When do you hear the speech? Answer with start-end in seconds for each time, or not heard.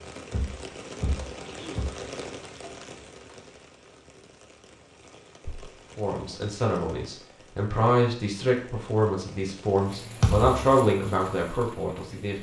6.0-12.3.